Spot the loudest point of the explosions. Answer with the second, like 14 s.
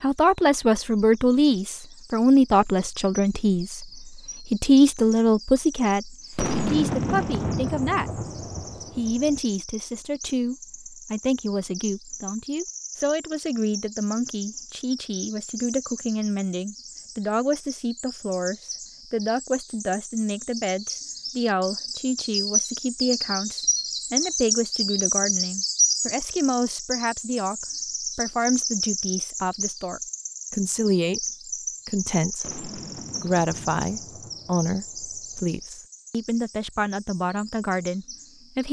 7 s.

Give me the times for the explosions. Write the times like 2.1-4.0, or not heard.
6.3-9.4, 32.4-35.5.